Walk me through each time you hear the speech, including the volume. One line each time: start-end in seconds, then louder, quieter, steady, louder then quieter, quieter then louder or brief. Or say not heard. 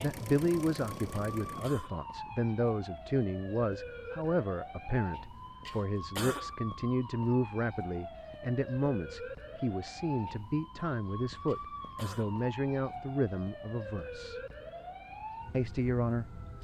0.0-14.4 steady
15.5-16.5 brief.